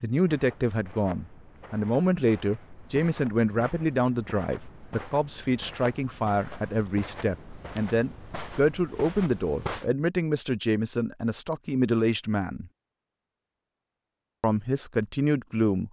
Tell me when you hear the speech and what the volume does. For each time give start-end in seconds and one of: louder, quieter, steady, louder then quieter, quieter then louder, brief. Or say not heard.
0.0-12.7 steady
14.4-15.8 brief.